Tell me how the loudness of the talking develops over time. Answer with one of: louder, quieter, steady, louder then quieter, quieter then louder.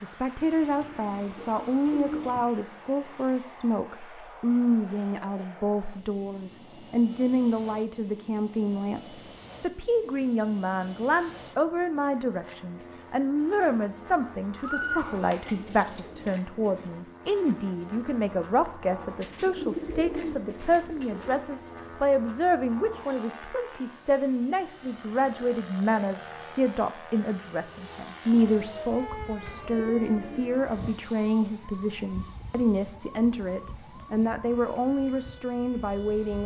steady.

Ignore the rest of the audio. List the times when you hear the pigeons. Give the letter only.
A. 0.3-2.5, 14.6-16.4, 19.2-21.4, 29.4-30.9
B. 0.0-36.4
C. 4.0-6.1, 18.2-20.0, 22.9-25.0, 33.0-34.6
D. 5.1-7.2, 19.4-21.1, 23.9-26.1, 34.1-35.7
A.